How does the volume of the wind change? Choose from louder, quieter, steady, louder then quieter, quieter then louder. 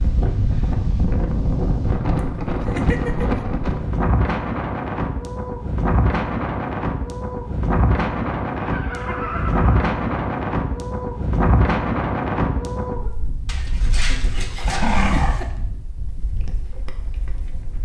quieter.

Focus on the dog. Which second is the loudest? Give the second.
15 s.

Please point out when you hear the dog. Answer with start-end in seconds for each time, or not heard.
13.4-15.4.